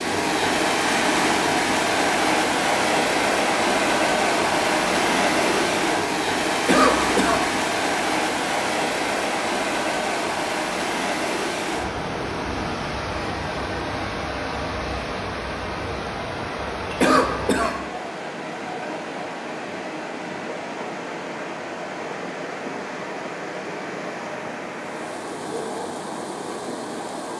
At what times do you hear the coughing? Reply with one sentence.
The coughing can be heard from 6.7 to 7.4 s and from 17.0 to 17.8 s.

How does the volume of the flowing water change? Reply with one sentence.
The volume of the flowing water goes down.